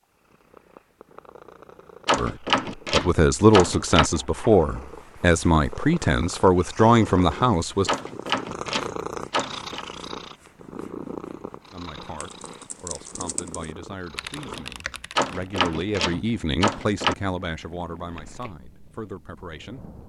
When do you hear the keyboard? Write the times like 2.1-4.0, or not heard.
12.2-15.7.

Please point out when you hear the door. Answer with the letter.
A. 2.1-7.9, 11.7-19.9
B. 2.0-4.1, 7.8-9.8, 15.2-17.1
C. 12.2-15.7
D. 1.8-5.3
B.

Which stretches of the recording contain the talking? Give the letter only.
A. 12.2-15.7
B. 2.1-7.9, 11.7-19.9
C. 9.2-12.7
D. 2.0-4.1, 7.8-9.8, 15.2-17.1
B.